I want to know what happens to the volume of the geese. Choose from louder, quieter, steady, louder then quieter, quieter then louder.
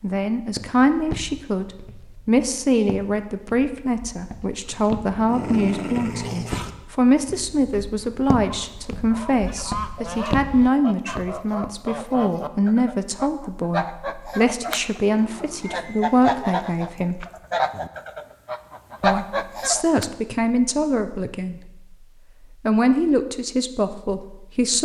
louder.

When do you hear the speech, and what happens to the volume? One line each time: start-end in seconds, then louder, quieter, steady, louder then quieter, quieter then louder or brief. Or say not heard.
0.0-17.2 steady
19.0-21.9 brief
22.6-24.8 brief.